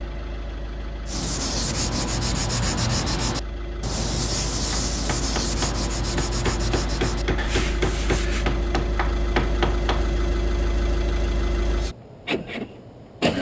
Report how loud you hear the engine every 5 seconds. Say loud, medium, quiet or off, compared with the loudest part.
medium, loud, loud.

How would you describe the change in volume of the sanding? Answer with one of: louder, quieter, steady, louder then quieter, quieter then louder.
quieter.